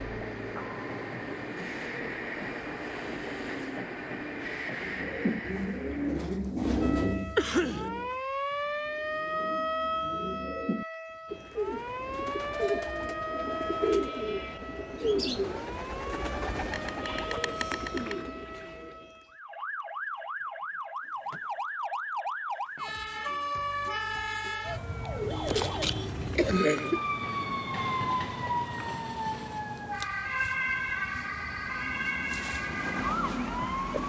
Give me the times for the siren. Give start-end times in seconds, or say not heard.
6.8-34.0.